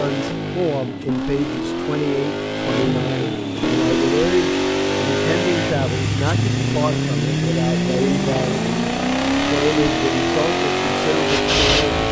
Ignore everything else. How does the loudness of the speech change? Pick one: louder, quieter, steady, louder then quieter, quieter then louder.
steady.